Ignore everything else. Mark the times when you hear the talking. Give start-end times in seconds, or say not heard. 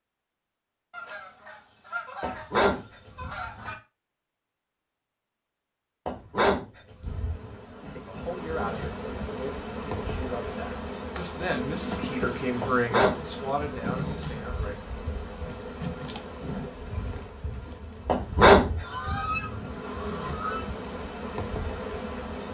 7.9-14.8.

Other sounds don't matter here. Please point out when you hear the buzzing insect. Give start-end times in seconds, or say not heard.
7.0-22.4.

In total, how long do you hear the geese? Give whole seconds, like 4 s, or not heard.
5 s.